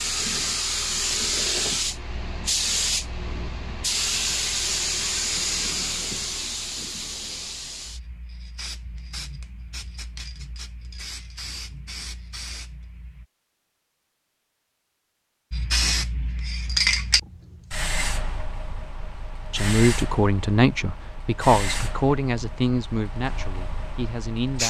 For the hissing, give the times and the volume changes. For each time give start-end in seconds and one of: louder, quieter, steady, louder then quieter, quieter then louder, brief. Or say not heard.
0.0-13.2 quieter
15.5-24.6 quieter.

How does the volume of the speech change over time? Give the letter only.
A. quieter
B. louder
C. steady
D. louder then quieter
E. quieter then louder
A.